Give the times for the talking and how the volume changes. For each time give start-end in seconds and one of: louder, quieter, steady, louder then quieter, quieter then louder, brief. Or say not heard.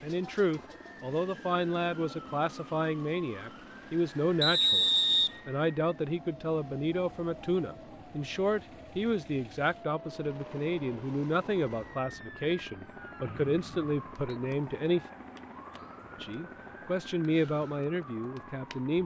0.0-15.1 steady
16.2-19.0 brief.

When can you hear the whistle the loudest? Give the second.
5 s.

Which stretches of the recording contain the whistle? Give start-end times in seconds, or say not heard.
4.4-5.3, 13.2-14.3.